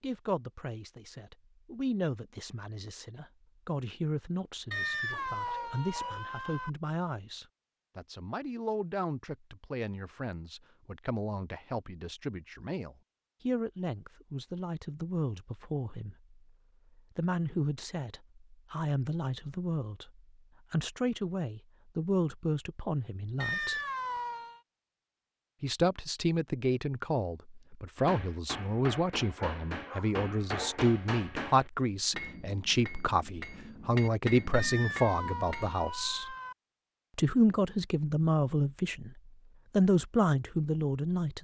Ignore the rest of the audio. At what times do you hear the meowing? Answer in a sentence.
The meowing can be heard from 4.7 to 6.7 s, from 23.4 to 24.6 s and from 34.5 to 36.5 s.